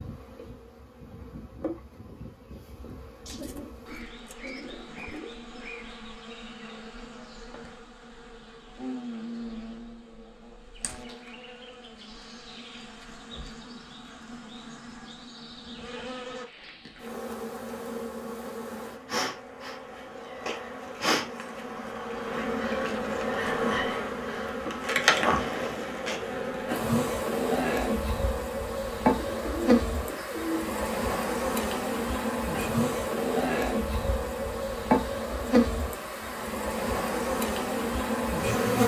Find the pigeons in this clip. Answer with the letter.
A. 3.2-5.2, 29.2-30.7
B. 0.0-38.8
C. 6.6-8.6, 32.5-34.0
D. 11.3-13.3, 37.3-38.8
A.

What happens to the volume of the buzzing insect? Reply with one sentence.
The volume of the buzzing insect goes up.